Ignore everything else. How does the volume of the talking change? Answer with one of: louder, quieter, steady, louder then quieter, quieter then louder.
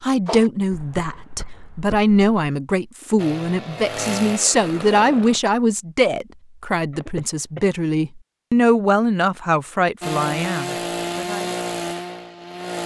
steady.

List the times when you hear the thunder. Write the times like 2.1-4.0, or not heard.
not heard.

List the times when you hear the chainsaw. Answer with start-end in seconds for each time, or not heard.
3.1-5.4, 10.0-12.8.